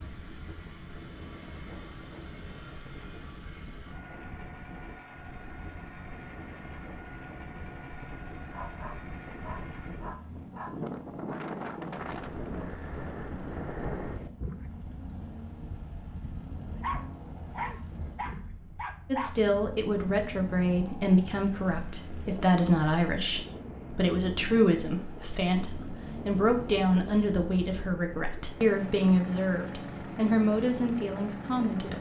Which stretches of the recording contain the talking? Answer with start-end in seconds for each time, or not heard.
19.1-31.9.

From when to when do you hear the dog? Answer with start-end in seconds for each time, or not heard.
8.5-10.8, 16.8-19.4.